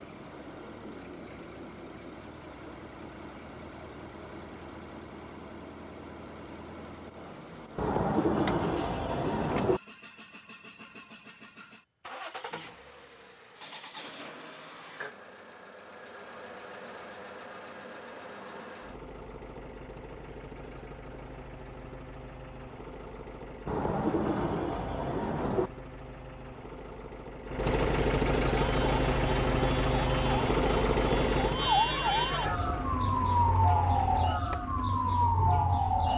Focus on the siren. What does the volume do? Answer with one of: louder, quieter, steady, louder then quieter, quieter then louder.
louder.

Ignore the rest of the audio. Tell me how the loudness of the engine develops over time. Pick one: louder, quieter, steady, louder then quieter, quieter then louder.
louder.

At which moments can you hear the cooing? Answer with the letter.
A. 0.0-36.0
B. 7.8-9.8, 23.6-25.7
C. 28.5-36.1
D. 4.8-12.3
B.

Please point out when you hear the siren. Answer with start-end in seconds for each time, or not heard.
28.5-36.1.